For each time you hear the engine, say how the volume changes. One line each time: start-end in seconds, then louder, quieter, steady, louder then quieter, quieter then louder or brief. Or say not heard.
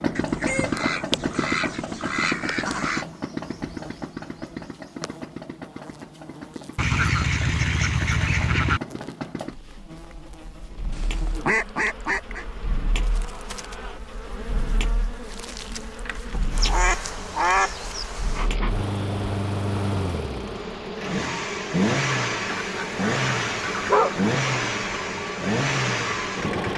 0.0-26.7 quieter then louder.